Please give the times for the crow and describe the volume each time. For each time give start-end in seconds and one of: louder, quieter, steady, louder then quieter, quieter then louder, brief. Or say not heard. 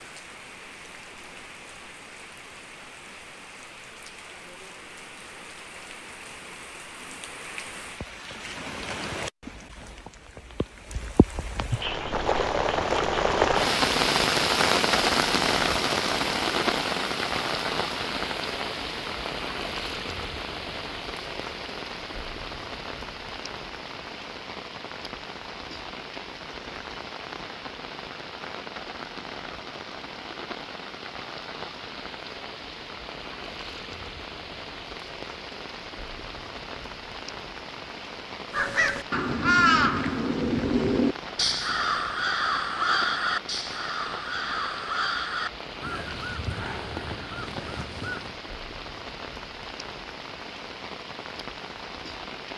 38.5-48.4 quieter.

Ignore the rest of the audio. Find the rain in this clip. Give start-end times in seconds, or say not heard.
0.0-52.5.